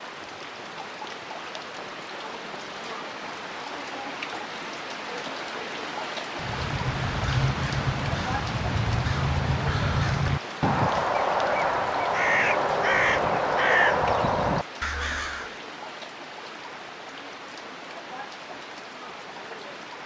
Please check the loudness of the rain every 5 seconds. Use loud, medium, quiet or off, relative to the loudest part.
loud, loud, loud, medium.